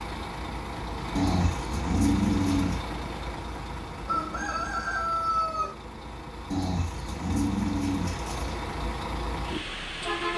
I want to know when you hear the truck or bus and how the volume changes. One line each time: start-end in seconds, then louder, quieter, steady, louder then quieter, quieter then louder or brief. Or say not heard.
0.0-10.3 quieter then louder.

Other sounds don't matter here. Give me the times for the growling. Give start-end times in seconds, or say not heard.
1.1-2.8, 6.5-8.6.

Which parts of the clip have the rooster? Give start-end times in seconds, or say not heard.
4.0-5.8.